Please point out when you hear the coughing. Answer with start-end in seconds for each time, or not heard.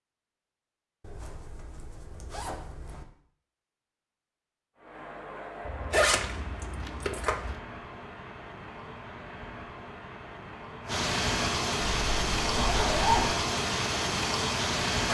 not heard.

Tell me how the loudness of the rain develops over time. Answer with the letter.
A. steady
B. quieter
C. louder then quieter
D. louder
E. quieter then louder
D.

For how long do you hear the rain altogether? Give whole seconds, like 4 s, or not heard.
10 s.